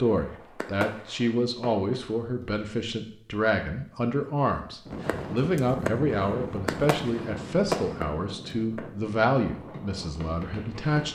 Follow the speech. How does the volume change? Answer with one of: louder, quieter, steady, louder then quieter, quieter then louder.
steady.